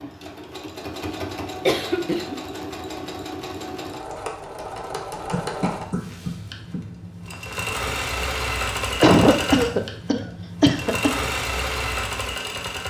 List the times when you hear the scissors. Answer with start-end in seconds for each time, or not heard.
not heard.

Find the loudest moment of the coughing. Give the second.
9 s.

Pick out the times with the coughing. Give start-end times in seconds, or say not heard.
1.6-2.4, 5.3-6.8, 9.0-11.1.